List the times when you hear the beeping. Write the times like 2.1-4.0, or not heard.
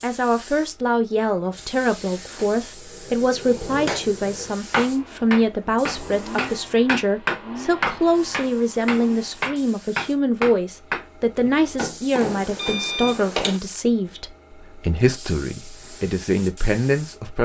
12.1-13.6.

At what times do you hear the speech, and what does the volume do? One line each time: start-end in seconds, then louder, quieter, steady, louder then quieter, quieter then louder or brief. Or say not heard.
0.0-17.4 steady.